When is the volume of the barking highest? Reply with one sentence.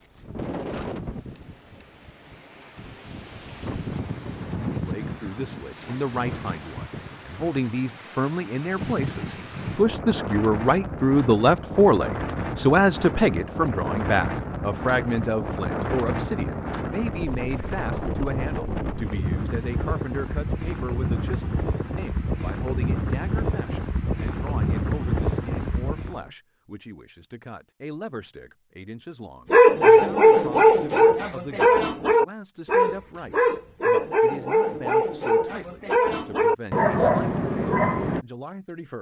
The loudest moment of the barking is at 30 seconds.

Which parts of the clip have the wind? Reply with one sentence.
The wind can be heard from 0.0 to 26.3 s.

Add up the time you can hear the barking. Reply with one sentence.
The barking can be heard for 9 seconds in total.